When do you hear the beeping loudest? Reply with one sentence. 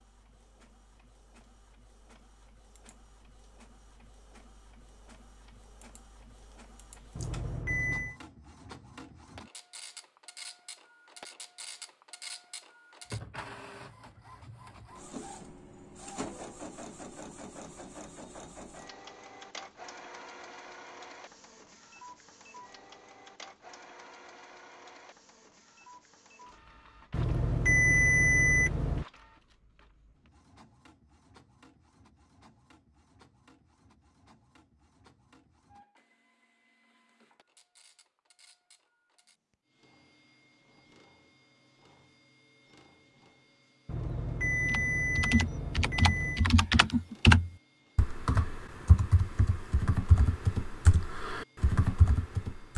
The loudest moment of the beeping is at 28 seconds.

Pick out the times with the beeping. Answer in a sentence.
The beeping can be heard from 7.2 to 8.2 s, from 27.1 to 29.1 s and from 43.9 to 46.5 s.